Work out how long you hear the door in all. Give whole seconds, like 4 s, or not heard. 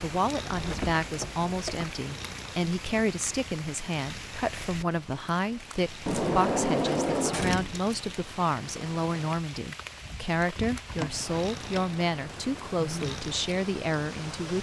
4 s.